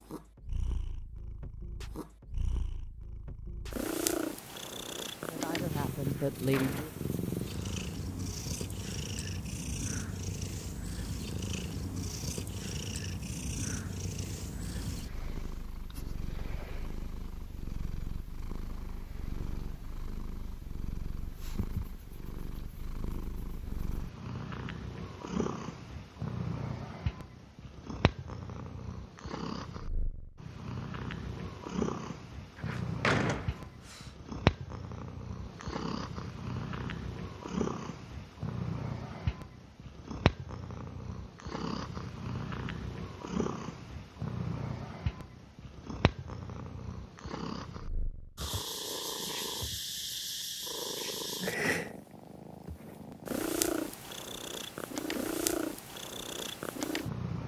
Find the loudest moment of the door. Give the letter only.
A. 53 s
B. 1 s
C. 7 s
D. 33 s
D.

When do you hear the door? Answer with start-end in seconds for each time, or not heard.
6.0-7.9, 32.5-34.0.